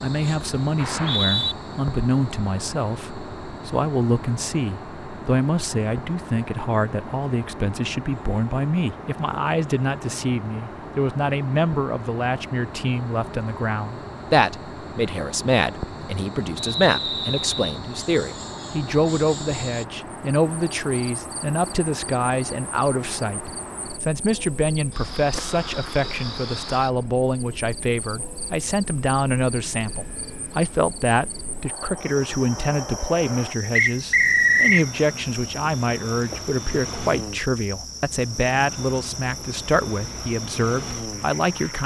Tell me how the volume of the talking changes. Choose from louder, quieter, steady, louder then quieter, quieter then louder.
steady.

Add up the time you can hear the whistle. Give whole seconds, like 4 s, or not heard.
3 s.